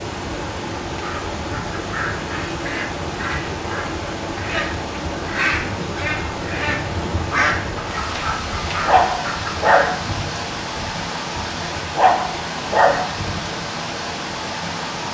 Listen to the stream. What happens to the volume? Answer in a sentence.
The volume of the stream stays about the same.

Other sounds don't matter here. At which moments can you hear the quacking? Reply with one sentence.
The quacking can be heard from 0.9 to 9.9 s.